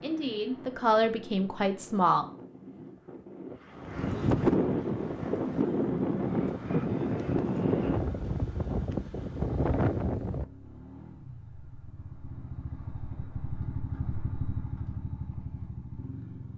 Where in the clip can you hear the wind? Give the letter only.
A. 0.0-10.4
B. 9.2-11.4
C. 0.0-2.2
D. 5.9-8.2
A.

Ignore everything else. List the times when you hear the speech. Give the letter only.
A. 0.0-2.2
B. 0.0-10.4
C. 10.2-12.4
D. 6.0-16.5
A.